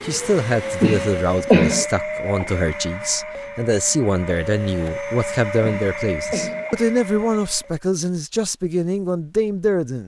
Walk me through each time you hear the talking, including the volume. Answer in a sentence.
You can hear the talking from 0.0 to 10.0 s, at a steady volume.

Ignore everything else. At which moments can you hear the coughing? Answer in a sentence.
The coughing can be heard from 0.8 to 1.9 s and from 5.6 to 6.7 s.